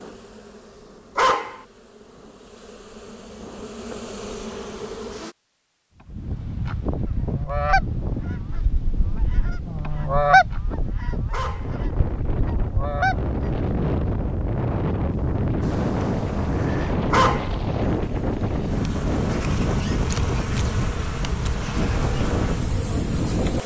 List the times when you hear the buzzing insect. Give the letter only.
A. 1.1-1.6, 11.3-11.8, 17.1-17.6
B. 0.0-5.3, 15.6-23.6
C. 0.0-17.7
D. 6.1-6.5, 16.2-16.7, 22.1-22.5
B.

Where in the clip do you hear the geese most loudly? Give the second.
10 s.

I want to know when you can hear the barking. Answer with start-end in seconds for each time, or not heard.
1.1-1.6, 11.3-11.8, 17.1-17.6.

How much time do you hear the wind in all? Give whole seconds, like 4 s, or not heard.
18 s.